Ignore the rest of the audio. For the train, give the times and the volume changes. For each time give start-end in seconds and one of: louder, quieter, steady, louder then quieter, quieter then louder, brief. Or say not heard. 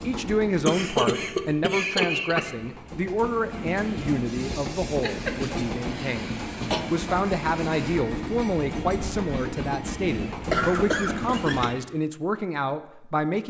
0.0-11.7 louder.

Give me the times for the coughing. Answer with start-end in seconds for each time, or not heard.
0.7-2.5, 5.0-6.8, 10.5-11.8.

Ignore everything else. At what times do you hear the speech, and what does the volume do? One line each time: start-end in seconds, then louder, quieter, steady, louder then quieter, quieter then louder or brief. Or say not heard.
0.0-13.4 steady.